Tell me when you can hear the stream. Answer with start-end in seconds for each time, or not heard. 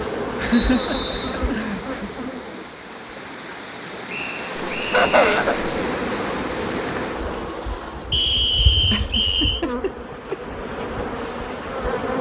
0.0-8.3.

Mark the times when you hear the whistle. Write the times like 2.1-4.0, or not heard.
0.5-1.4, 4.0-5.5, 8.1-9.7.